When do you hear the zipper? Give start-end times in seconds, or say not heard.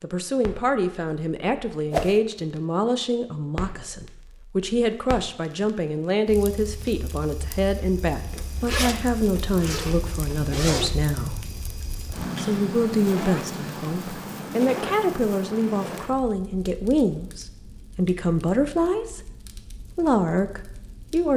8.3-10.9.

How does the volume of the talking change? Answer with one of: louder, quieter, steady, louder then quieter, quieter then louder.
steady.